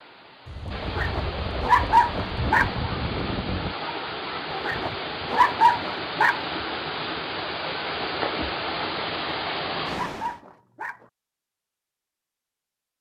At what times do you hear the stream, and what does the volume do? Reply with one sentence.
You can hear the stream from 0.0 to 10.4 s, getting louder.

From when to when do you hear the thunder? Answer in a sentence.
You can hear the thunder from 0.5 to 3.8 s.